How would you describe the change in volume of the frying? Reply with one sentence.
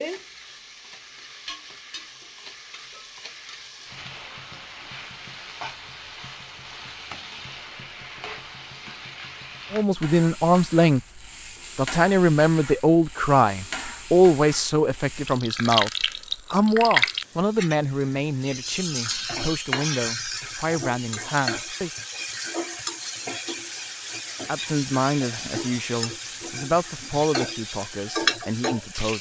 The volume of the frying goes up.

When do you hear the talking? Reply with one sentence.
The talking can be heard from 9.7 to 11.0 s, from 11.8 to 15.9 s, from 16.5 to 21.9 s and from 24.4 to 29.1 s.